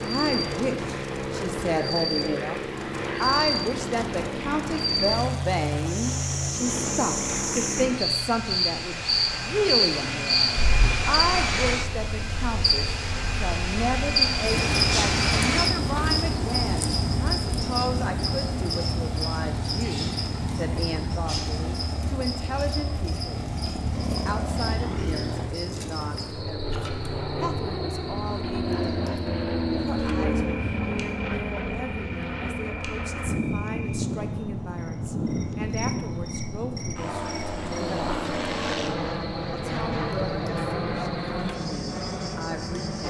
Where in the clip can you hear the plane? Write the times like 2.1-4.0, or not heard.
0.0-43.0.